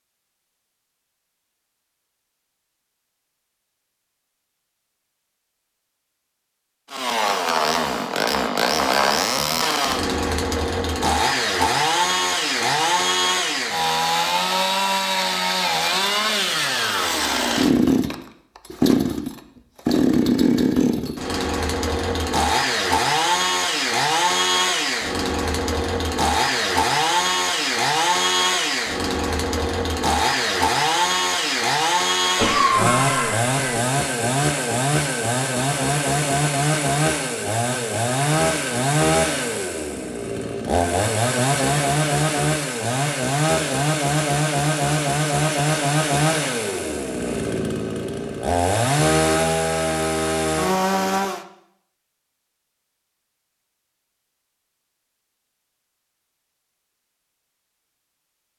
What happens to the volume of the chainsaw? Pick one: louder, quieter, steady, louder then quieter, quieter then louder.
steady.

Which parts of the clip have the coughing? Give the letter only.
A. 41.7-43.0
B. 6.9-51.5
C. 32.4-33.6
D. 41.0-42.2
C.